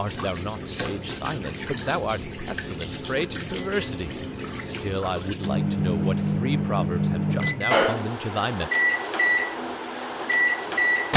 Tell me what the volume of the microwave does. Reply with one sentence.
The volume of the microwave goes up.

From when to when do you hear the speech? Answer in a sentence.
You can hear the speech from 0.0 to 8.7 s.